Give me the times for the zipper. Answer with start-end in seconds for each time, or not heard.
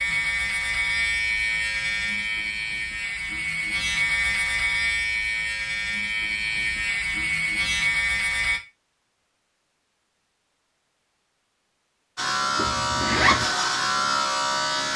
12.6-13.4.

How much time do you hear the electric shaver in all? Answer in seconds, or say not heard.
11 s.